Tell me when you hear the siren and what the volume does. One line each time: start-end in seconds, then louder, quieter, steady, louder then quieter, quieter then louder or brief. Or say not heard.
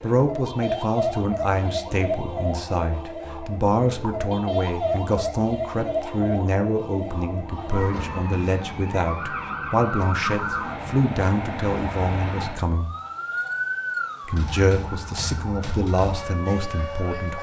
0.0-17.3 steady.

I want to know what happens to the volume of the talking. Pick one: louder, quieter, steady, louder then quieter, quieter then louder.
steady.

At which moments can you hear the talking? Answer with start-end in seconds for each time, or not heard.
0.0-12.9, 14.2-17.3.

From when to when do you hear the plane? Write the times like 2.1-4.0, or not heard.
not heard.